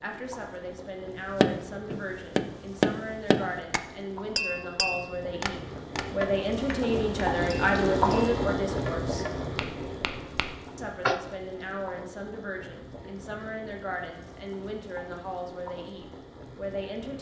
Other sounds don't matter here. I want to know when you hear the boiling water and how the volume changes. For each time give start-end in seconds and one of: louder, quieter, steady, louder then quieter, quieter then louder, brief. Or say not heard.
0.0-17.1 louder then quieter.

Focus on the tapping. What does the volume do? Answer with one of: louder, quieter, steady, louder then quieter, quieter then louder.
quieter.